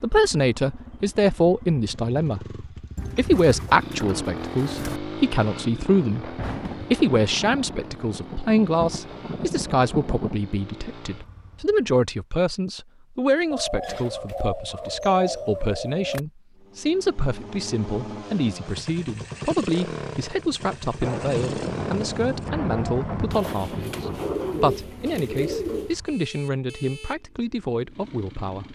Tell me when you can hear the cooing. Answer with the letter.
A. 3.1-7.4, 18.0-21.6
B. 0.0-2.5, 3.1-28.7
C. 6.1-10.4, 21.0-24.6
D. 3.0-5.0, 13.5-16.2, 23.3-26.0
D.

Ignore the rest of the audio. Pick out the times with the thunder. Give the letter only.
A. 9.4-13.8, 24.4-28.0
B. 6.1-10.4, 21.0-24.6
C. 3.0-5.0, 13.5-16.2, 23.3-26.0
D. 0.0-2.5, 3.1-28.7
B.